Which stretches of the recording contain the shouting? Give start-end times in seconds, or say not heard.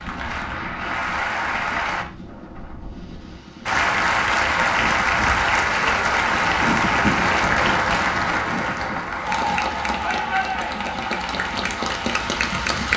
10.0-11.0.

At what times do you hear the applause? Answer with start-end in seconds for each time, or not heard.
0.0-2.0, 3.6-12.9.